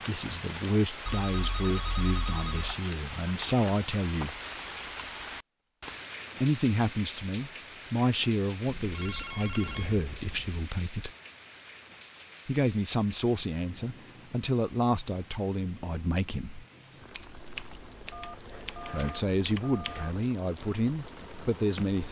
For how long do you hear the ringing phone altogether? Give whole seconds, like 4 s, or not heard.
6 s.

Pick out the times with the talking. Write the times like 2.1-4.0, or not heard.
0.0-4.3, 6.4-11.1, 12.4-16.6, 18.9-22.0.